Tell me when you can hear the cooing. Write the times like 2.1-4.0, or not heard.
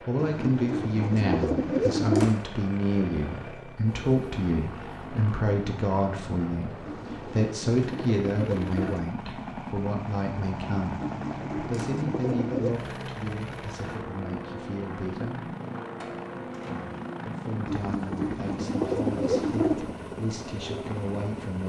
0.1-2.3, 6.8-9.1, 11.0-12.8, 17.6-19.9.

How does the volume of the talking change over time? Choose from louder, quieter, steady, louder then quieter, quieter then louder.
quieter.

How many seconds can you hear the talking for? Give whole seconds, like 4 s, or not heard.
20 s.